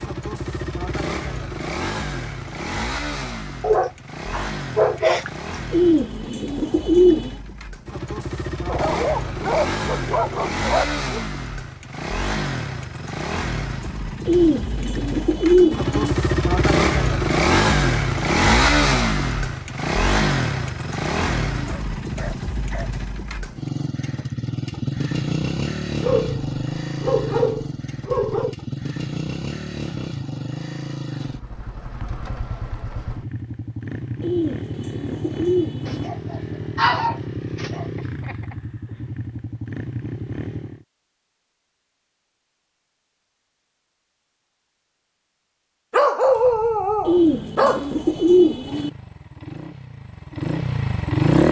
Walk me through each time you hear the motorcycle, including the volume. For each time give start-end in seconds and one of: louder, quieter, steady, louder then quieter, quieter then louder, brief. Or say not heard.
0.0-40.9 louder then quieter
46.2-51.4 louder.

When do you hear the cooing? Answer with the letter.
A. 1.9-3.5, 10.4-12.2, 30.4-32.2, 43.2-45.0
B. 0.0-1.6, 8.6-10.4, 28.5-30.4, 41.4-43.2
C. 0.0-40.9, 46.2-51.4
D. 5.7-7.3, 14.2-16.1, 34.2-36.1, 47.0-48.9
D.